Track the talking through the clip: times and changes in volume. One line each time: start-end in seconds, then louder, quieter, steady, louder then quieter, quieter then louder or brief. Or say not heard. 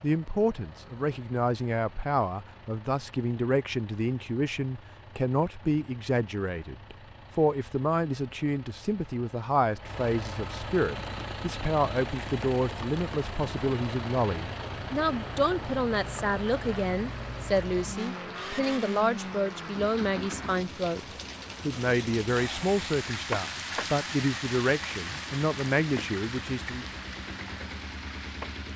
0.0-26.9 steady.